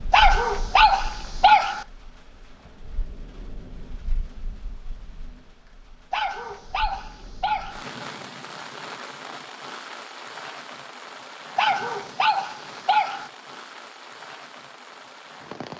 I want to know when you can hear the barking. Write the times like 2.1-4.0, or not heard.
0.1-1.9, 6.1-7.8, 11.6-13.3.